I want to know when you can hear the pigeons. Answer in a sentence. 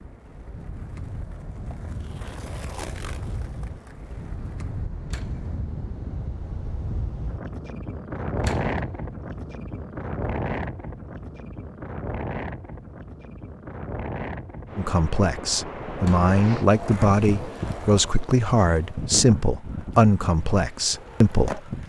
You can't hear the pigeons here.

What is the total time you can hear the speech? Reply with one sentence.
You can hear the speech for 7 seconds altogether.